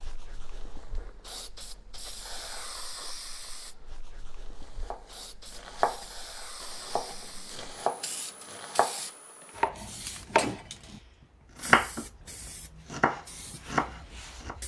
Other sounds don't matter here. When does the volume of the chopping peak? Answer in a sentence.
The volume of the chopping peaks at 12 seconds.